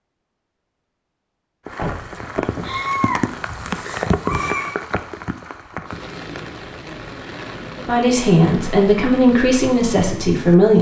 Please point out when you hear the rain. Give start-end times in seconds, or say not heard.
1.6-10.7.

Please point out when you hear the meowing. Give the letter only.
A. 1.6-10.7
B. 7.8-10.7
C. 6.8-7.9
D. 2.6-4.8
D.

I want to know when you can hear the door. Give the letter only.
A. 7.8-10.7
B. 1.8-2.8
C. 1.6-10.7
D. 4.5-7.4
B.